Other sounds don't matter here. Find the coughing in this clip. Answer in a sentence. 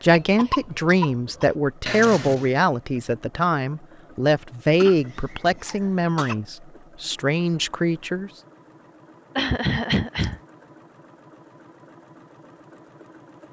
The coughing can be heard from 0.3 to 1.4 s, from 4.8 to 6.3 s and from 9.3 to 10.4 s.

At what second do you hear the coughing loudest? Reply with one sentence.
The volume of the coughing peaks at 10 seconds.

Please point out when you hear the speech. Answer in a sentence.
You can hear the speech from 0.0 to 8.3 s.